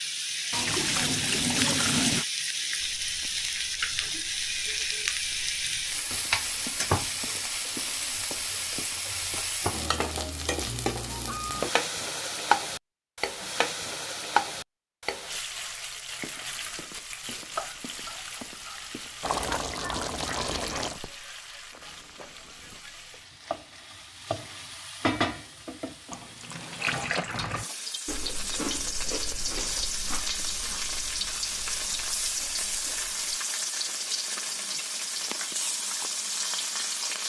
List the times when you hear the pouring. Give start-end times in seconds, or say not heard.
0.5-2.2, 19.2-21.0, 26.1-27.7.